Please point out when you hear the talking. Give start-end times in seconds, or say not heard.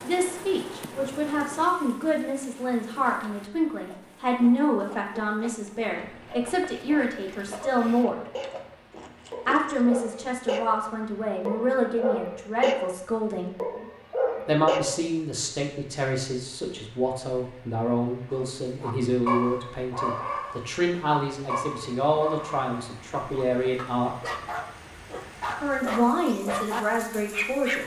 0.0-8.2, 9.4-13.6, 14.4-24.3, 25.6-27.8.